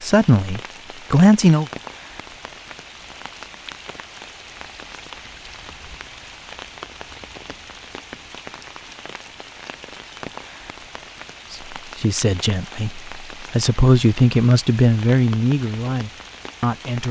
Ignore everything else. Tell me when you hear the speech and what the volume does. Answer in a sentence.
You can hear the speech briefly from 0.0 to 1.6 s; and from 11.5 to 17.0 s, getting louder then quieter.